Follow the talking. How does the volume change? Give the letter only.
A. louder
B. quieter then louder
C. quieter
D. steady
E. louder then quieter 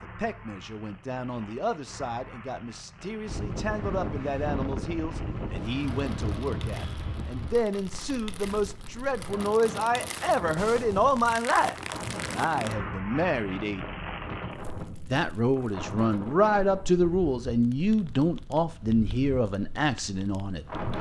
A.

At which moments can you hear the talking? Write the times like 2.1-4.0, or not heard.
0.0-13.8, 15.1-20.6.